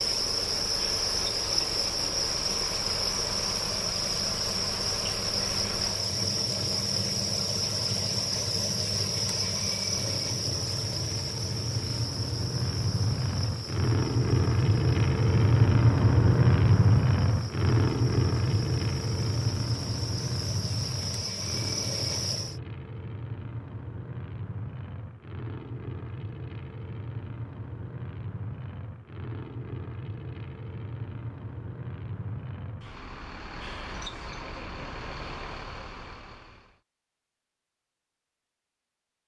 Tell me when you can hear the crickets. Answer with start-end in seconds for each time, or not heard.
0.0-22.6.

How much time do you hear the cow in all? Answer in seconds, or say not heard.
not heard.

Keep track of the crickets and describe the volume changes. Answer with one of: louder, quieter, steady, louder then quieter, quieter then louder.
quieter then louder.